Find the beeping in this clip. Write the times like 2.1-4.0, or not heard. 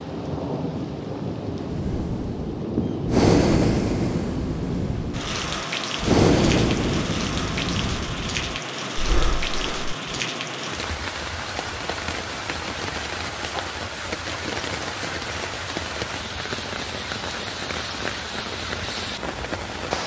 not heard.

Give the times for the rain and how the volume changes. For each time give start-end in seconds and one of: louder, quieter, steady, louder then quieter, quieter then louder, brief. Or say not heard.
0.0-20.0 steady.